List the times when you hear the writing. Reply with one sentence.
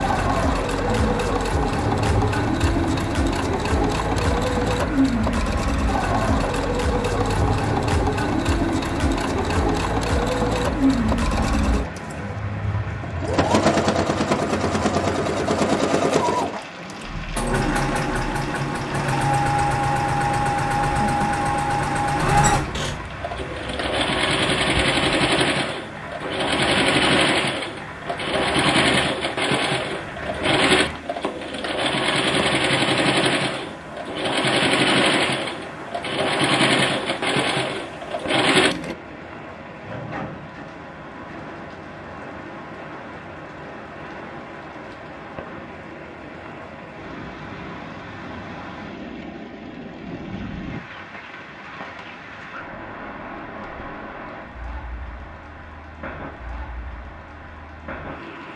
The writing can't be heard in this clip.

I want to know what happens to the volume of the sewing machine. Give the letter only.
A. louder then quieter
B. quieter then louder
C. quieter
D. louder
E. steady
E.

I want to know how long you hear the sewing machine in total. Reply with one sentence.
The sewing machine can be heard for 39 seconds in total.